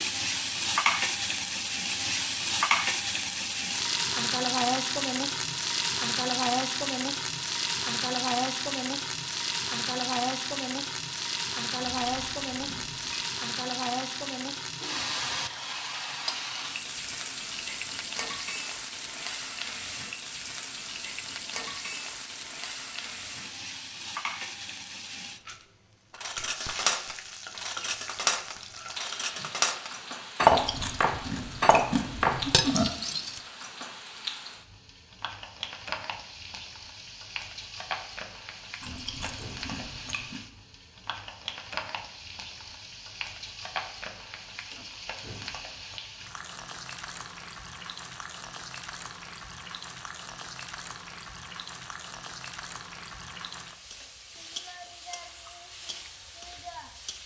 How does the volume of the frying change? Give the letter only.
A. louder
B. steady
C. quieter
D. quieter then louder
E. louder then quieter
C.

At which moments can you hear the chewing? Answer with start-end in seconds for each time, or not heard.
12.1-13.2, 30.4-32.9, 38.8-40.4.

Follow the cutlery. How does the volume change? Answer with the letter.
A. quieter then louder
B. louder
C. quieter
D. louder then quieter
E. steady
D.